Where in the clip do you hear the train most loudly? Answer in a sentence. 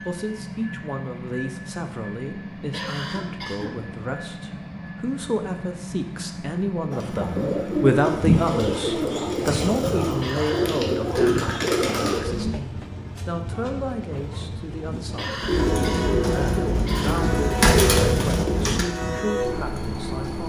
The volume of the train peaks at 18 seconds.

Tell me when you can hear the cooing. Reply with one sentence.
You can hear the cooing from 6.9 to 12.5 s and from 15.4 to 20.4 s.